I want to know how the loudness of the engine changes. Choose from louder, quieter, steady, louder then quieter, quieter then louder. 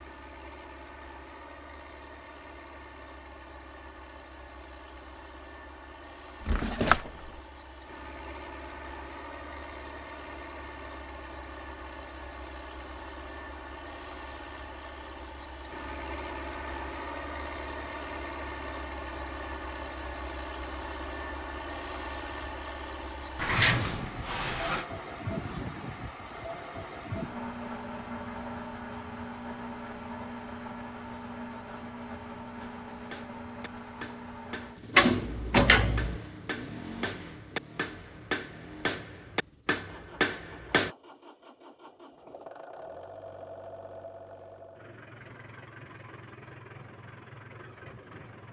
louder then quieter.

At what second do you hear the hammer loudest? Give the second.
40 s.